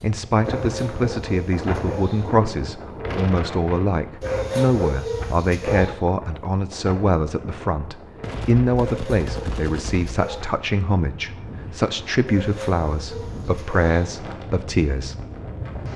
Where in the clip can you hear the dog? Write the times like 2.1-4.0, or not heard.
0.4-2.4, 4.2-5.9, 8.8-10.4, 12.2-14.2.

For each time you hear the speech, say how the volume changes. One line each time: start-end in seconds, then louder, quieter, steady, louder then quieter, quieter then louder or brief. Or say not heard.
0.0-15.2 steady.